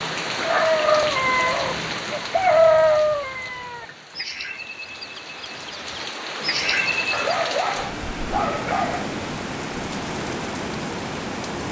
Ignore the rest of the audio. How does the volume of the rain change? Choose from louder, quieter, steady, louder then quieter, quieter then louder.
quieter then louder.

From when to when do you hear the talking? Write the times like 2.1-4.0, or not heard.
not heard.